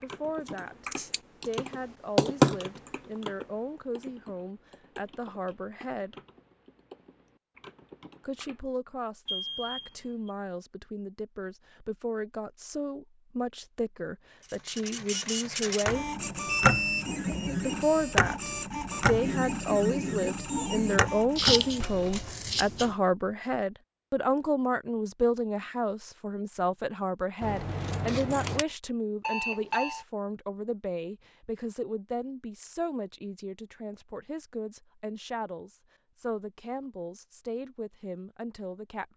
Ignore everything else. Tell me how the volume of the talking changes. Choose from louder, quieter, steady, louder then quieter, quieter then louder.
louder then quieter.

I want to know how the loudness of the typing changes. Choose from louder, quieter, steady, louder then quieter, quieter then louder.
louder then quieter.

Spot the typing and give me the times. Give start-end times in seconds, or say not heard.
0.0-8.6.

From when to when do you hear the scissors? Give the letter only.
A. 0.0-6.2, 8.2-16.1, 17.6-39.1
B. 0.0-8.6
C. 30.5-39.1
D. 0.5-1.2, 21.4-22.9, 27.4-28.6
D.